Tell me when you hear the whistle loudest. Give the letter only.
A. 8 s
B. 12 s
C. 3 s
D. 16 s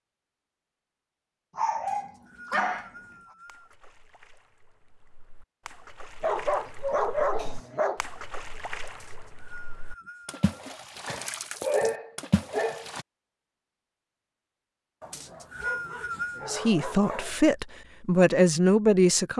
D.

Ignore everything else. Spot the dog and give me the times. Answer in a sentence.
You can hear the dog from 1.6 to 2.9 s, from 6.2 to 8.0 s, from 11.1 to 12.9 s and from 15.0 to 17.5 s.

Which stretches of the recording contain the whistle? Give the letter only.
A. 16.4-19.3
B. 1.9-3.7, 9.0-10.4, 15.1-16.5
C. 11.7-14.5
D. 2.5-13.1
B.